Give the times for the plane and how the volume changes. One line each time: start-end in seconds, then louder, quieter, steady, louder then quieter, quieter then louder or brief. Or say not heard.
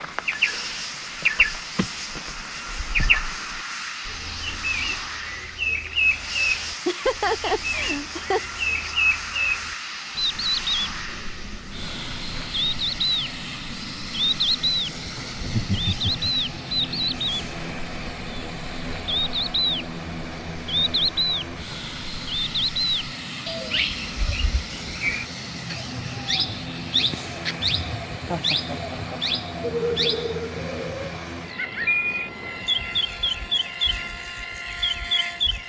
0.0-35.6 steady.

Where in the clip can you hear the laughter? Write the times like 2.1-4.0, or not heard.
6.8-8.4, 15.3-16.3, 28.3-29.4.